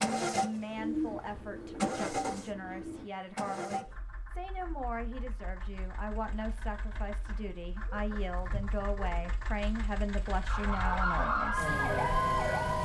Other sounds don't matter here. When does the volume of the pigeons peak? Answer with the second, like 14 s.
1 s.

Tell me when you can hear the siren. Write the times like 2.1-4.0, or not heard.
10.4-12.7.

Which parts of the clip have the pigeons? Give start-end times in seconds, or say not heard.
0.8-3.0, 6.8-9.3.